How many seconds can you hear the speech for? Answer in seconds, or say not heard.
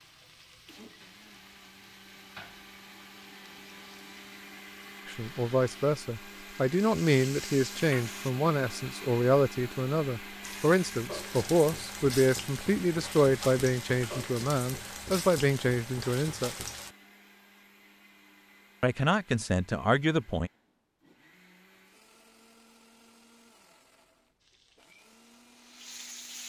13 s.